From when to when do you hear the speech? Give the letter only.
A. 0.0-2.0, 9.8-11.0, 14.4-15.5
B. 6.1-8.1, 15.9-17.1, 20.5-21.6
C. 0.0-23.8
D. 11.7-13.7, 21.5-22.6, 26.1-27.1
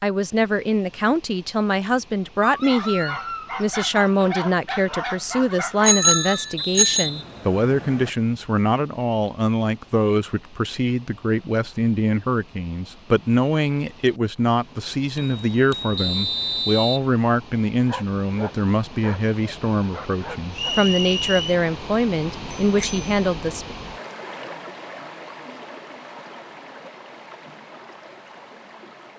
C.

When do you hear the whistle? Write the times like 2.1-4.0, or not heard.
6.1-8.1, 15.9-17.1, 20.5-21.6.